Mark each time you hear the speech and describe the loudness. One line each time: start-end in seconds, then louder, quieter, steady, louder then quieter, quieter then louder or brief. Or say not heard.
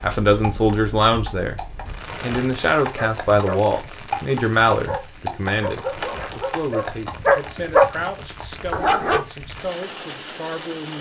0.0-1.6 brief
2.2-10.9 quieter.